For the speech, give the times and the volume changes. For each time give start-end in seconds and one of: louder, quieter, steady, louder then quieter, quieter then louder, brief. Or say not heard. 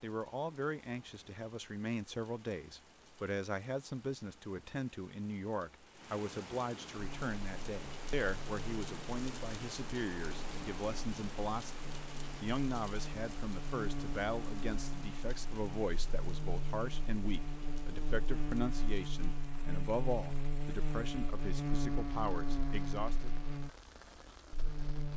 0.0-23.3 steady.